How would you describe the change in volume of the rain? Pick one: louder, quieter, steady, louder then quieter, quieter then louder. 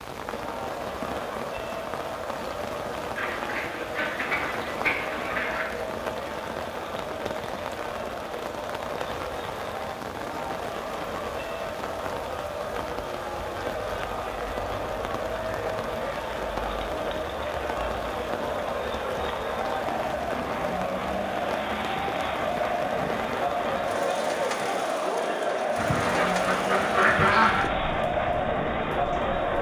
steady.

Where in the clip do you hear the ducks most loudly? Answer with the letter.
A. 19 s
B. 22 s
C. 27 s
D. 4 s
C.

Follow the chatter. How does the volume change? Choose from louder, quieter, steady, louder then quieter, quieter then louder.
louder.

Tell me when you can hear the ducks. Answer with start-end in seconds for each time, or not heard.
3.1-5.7, 25.8-27.6.